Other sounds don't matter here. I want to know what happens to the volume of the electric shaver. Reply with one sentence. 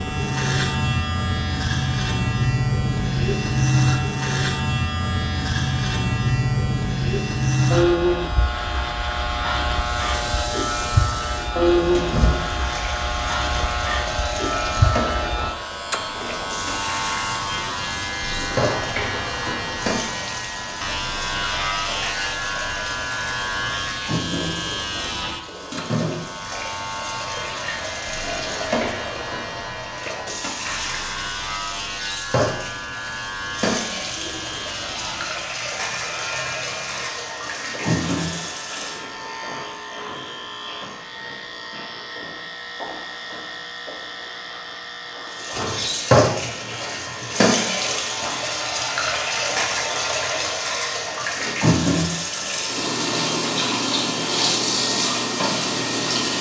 The volume of the electric shaver goes down.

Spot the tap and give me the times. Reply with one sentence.
You can hear the tap from 9.8 to 39.2 s and from 45.3 to 56.3 s.